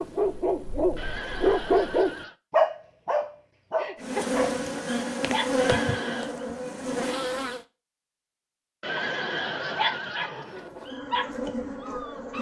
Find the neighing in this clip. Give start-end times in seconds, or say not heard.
0.9-2.4, 5.5-6.3, 8.8-10.7.